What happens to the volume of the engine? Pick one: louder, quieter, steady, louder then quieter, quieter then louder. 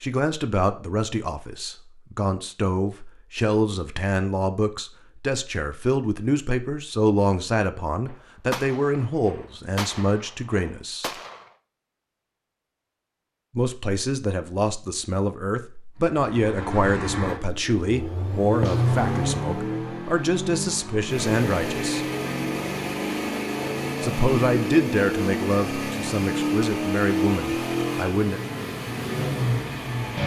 steady.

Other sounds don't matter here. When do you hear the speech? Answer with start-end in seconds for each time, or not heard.
0.0-11.1, 13.6-22.1, 24.0-28.4.